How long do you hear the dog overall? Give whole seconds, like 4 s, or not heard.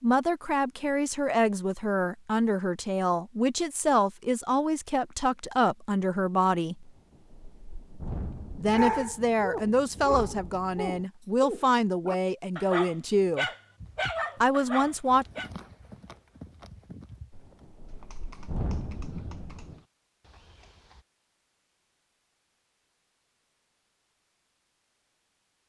7 s.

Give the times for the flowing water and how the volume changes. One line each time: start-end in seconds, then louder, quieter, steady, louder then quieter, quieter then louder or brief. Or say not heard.
not heard.